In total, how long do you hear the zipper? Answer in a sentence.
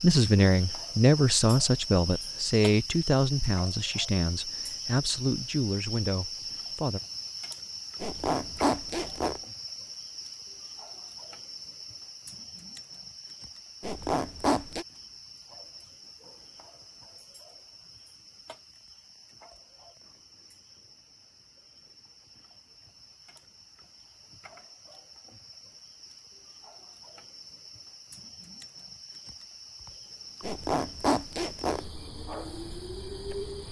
The zipper can be heard for 4 seconds in total.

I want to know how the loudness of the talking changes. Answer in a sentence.
The volume of the talking goes down.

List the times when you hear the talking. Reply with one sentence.
You can hear the talking from 0.0 to 7.0 s.